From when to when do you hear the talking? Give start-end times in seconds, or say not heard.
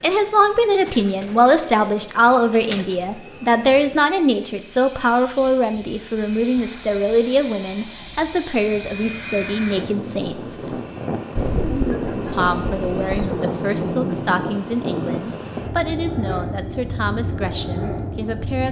0.0-10.8, 12.2-18.6.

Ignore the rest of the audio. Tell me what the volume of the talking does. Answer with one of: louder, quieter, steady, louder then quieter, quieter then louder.
quieter.